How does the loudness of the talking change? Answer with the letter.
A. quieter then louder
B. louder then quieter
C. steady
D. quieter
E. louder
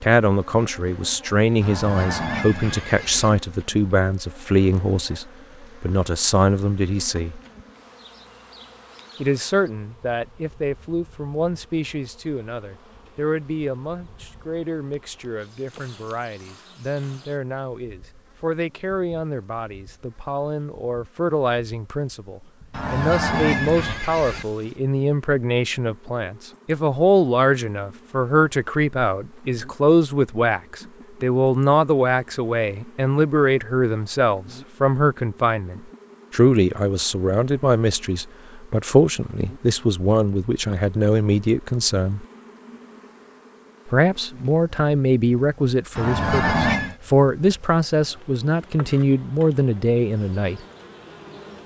A.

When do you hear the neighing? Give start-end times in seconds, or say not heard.
1.6-3.3, 22.7-24.4, 46.0-47.0.